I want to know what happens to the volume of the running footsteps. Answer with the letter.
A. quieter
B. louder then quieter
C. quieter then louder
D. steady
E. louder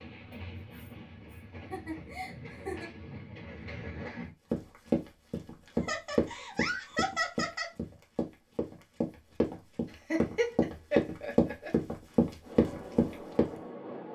C.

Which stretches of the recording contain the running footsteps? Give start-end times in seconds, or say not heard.
4.5-13.6.